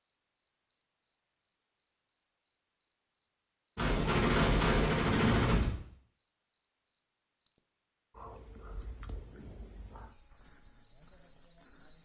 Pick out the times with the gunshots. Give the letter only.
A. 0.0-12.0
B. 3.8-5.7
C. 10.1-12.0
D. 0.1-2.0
B.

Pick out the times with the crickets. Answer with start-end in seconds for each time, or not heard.
0.0-12.0.